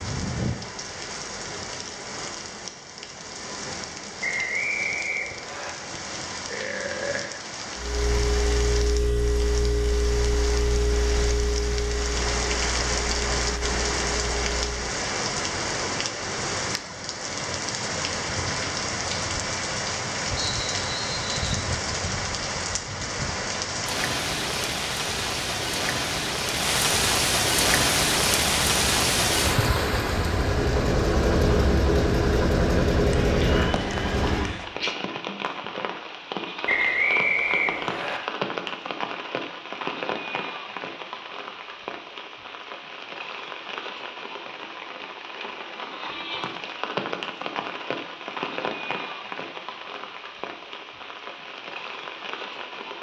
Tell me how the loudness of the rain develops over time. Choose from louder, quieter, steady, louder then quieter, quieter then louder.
louder then quieter.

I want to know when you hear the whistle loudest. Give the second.
37 s.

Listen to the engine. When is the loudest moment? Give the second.
33 s.